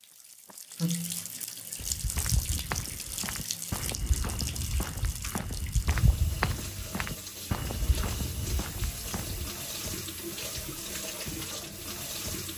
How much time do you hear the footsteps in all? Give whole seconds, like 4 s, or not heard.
8 s.